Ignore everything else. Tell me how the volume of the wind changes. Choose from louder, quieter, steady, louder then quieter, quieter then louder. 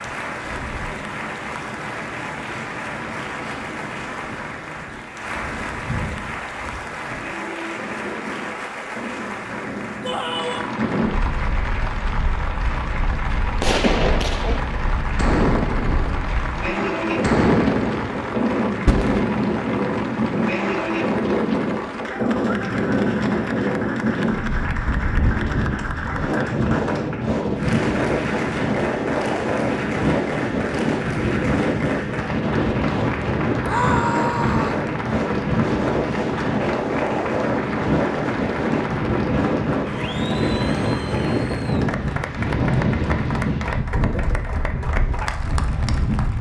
louder.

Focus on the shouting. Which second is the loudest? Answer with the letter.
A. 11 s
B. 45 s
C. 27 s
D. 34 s
D.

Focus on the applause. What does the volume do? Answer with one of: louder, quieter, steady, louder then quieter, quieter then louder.
steady.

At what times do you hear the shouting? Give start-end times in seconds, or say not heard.
10.1-10.7, 33.6-34.8.